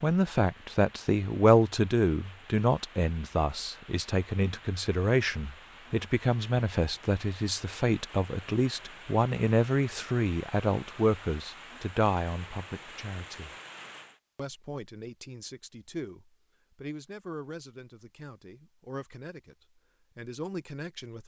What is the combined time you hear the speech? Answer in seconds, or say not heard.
20 s.